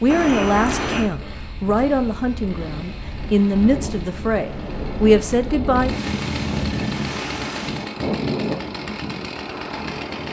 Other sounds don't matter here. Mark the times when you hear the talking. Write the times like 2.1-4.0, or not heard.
0.0-5.9.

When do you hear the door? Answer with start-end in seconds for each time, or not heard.
0.1-1.1, 7.0-7.7.